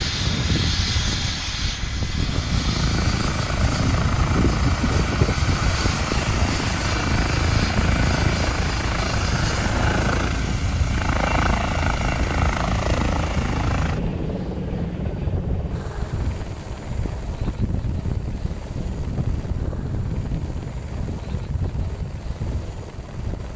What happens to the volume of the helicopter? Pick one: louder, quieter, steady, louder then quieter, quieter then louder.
quieter.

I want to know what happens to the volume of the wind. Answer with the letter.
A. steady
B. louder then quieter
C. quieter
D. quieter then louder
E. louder
A.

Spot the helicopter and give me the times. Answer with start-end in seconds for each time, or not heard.
0.0-23.5.